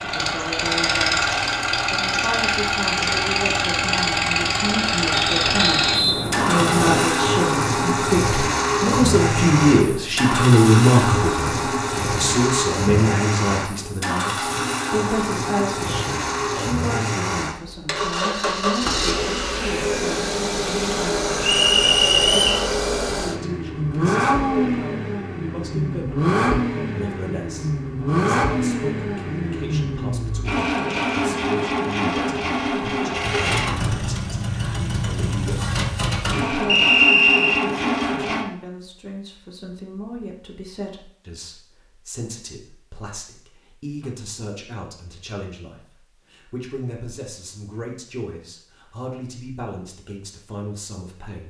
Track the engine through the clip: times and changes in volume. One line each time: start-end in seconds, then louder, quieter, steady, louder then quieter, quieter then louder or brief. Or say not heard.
0.0-38.5 steady.